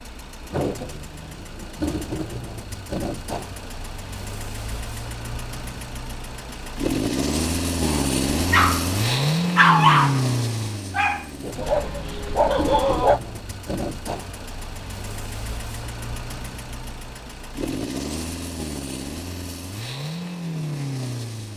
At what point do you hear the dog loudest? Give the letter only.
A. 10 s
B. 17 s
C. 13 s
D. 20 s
A.